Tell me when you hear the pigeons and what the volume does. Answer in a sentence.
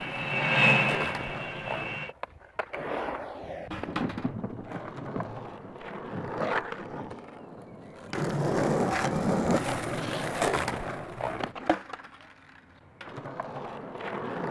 The pigeons can't be heard in this clip.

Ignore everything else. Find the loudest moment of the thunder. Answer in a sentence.
The volume of the thunder peaks at 4 seconds.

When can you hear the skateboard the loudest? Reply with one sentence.
The loudest moment of the skateboard is at 9 seconds.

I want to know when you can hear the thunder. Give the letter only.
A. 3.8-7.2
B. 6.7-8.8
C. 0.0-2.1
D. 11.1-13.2
A.